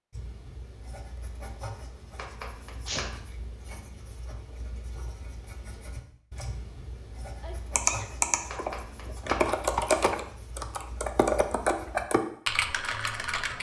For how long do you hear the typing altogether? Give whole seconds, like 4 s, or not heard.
6 s.